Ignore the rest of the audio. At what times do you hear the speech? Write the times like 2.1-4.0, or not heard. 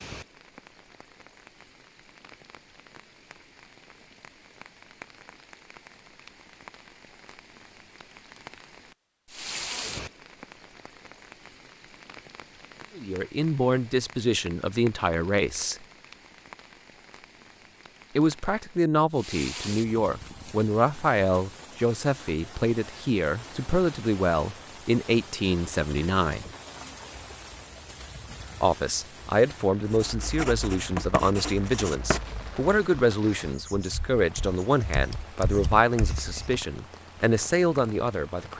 12.9-15.8, 18.1-26.5, 28.6-38.5.